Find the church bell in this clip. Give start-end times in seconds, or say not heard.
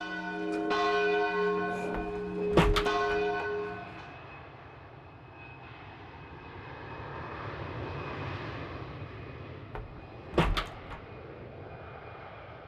0.0-4.2.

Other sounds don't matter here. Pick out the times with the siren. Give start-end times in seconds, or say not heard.
not heard.